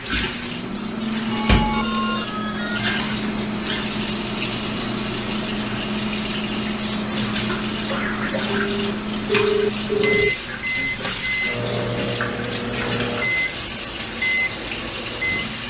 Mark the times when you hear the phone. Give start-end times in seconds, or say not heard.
1.3-3.0, 8.6-10.3.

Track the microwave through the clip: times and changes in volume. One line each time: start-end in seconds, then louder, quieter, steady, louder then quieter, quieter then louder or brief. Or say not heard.
0.0-15.6 steady.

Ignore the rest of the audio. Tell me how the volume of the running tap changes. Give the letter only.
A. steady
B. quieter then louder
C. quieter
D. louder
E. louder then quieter
A.